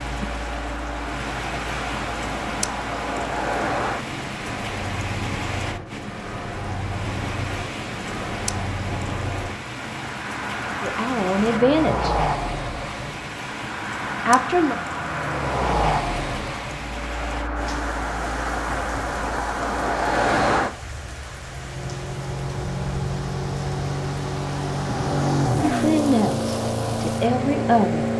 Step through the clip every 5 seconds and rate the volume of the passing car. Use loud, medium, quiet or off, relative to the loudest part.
medium, medium, medium, loud, loud, loud.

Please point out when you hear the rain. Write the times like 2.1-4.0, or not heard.
0.0-28.1.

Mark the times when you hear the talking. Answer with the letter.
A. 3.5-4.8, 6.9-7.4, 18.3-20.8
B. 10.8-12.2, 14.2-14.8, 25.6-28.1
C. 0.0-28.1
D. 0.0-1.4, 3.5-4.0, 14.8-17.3
B.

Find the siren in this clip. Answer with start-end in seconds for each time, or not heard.
not heard.